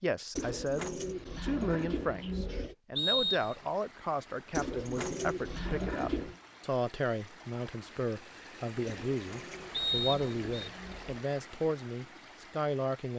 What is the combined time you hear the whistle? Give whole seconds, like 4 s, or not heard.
2 s.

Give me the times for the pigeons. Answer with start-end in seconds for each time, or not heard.
0.3-2.8, 4.5-6.3, 8.8-11.2.